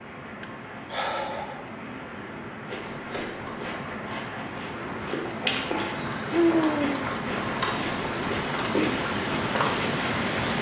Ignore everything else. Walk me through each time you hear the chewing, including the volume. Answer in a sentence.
The chewing can be heard from 2.6 to 9.9 s, getting louder.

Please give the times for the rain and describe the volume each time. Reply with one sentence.
The rain can be heard from 0.0 to 10.5 s, getting louder.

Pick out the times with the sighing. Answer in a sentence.
You can hear the sighing from 0.4 to 1.6 s and from 6.0 to 7.1 s.